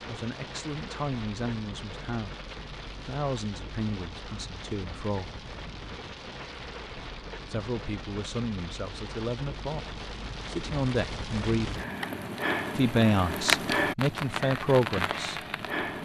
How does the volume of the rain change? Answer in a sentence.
The volume of the rain goes up.